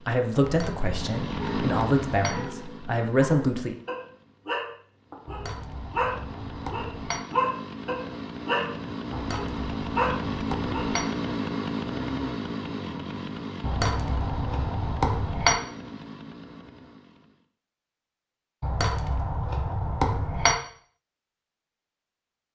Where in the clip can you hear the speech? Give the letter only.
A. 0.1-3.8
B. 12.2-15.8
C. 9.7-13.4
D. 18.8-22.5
A.